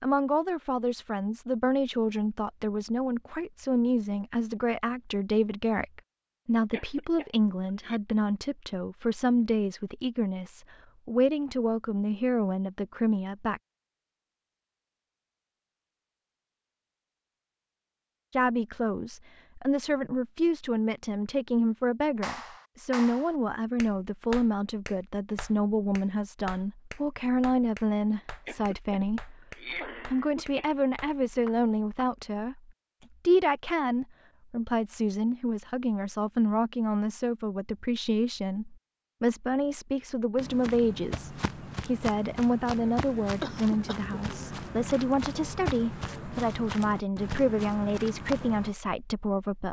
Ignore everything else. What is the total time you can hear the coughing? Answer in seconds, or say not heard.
4 s.